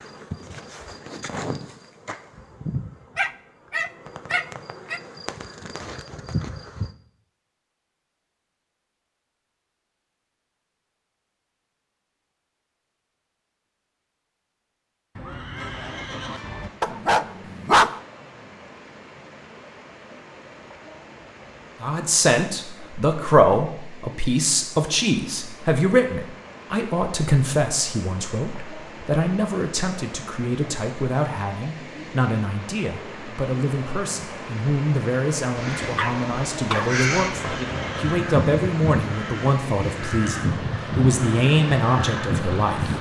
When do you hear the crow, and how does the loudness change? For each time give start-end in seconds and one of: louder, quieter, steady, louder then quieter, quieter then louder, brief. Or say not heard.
35.5-42.9 steady.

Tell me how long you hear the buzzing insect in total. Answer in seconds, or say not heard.
7 s.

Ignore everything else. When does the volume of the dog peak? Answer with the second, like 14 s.
18 s.